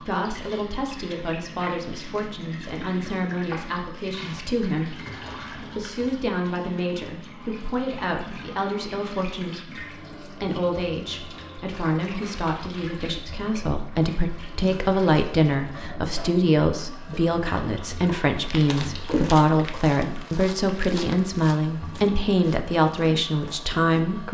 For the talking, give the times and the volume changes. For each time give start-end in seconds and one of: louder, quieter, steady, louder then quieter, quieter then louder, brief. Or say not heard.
0.0-24.2 louder.